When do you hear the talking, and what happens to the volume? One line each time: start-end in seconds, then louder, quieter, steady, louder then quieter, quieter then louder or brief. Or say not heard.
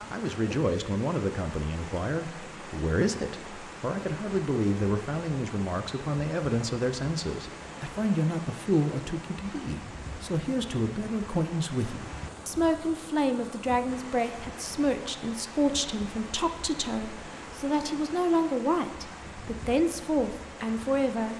0.1-21.3 steady.